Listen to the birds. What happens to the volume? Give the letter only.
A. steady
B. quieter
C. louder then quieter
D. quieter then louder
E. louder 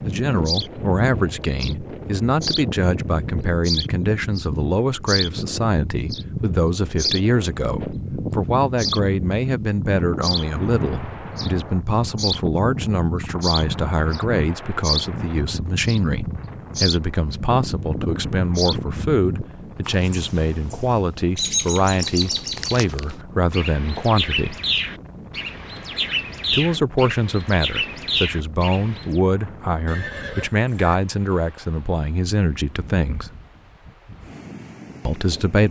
A.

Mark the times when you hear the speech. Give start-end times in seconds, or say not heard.
0.0-24.6, 26.5-33.3, 35.0-35.6.